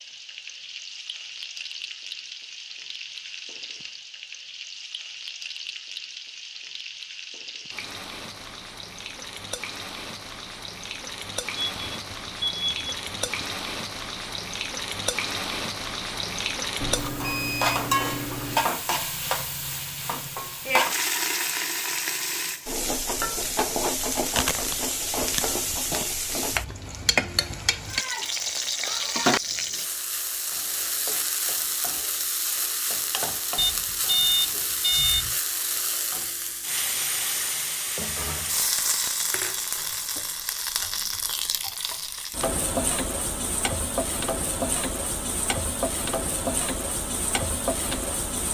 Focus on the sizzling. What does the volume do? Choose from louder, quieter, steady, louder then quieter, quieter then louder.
louder.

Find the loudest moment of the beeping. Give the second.
34 s.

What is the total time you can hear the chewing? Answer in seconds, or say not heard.
2 s.